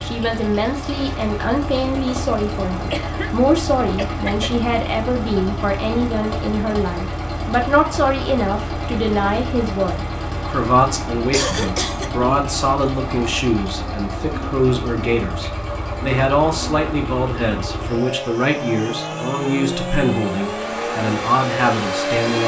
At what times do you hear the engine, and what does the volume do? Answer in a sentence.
The engine can be heard from 0.0 to 22.4 s, at a steady volume.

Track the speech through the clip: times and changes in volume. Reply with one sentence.
The speech can be heard from 0.0 to 22.4 s, at a steady volume.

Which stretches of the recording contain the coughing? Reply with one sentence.
You can hear the coughing from 2.9 to 4.7 s and from 11.3 to 12.1 s.